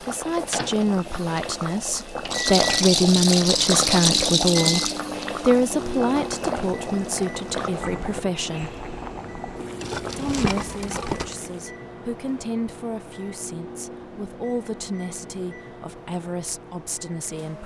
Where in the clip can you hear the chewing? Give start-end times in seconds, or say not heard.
not heard.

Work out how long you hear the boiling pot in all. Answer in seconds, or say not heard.
12 s.